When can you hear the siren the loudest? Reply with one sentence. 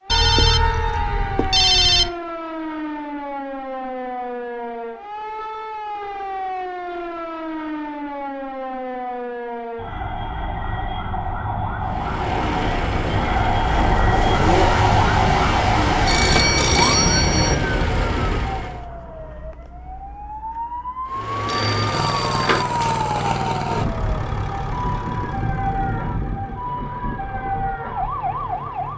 The loudest moment of the siren is at 15 seconds.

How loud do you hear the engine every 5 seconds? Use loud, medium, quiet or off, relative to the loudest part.
off, off, loud, loud, loud, medium.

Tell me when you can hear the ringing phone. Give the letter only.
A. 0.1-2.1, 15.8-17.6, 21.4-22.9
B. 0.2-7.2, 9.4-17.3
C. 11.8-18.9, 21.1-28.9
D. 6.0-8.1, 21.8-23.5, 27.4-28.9
A.